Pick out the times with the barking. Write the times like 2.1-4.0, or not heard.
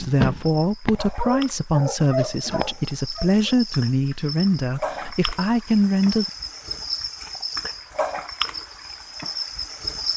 0.0-3.5.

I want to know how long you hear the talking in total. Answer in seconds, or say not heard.
6 s.